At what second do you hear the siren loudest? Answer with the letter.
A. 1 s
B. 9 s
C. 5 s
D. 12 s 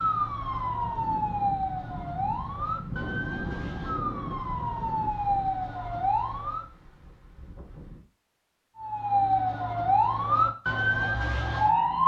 D.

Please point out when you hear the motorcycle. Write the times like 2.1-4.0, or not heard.
not heard.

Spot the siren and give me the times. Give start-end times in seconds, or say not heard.
0.0-6.7, 8.8-12.0.